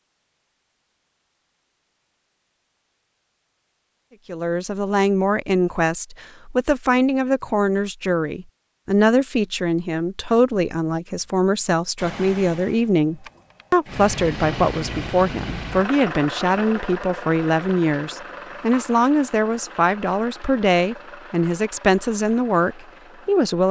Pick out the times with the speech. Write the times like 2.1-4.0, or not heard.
4.2-23.6.